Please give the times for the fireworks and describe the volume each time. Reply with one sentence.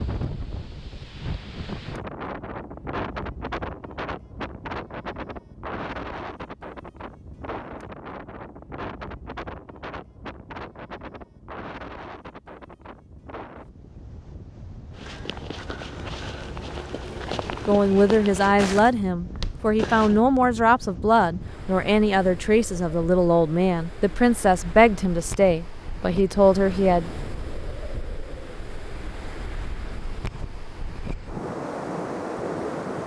You can't hear the fireworks here.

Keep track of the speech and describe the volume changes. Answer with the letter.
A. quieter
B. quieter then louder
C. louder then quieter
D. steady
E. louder
D.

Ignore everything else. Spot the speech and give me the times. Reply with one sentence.
You can hear the speech from 17.6 to 27.1 s.